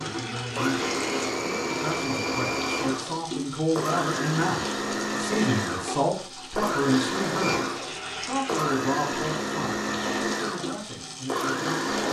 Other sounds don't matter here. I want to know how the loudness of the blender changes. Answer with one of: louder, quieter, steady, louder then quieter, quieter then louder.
steady.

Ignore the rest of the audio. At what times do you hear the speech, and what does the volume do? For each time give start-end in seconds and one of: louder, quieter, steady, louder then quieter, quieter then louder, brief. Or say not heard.
0.0-12.0 louder then quieter.